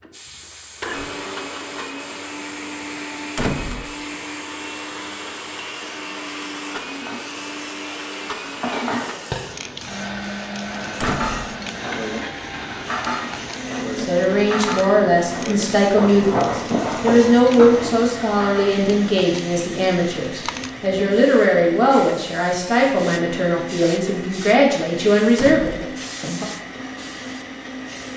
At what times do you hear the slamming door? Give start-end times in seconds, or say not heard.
3.4-4.0, 11.0-11.6, 25.4-25.9.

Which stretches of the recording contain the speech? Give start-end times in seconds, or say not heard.
13.9-26.4.